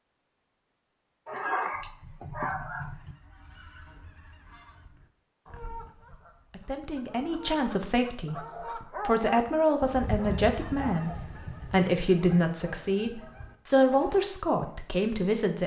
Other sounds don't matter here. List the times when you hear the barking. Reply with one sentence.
The barking can be heard from 1.2 to 3.1 s and from 8.3 to 11.2 s.